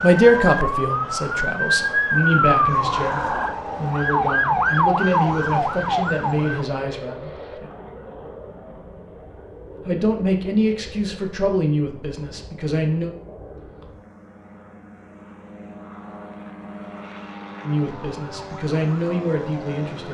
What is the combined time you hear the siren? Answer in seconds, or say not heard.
9 s.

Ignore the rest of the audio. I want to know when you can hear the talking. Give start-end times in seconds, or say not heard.
0.0-7.7, 9.8-13.1, 17.6-20.0.